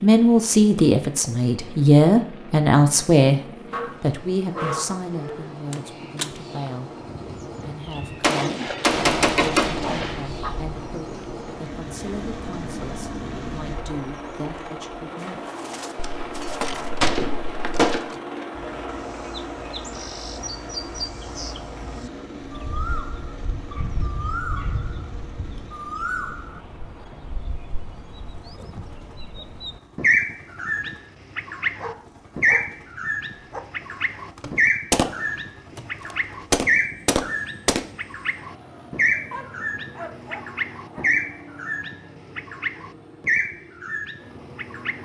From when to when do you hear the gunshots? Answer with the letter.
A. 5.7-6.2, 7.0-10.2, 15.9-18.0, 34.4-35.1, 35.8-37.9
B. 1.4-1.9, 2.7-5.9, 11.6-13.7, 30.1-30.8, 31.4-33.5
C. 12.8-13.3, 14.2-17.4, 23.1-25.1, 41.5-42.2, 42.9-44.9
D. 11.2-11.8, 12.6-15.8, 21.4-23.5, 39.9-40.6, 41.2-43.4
A.